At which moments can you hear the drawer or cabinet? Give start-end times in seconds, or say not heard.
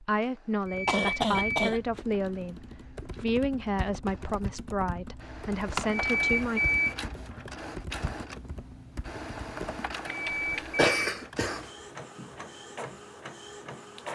not heard.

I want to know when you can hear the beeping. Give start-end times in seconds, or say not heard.
0.7-1.8, 5.8-7.0, 10.1-11.1.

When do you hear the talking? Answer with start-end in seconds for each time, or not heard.
0.0-6.6.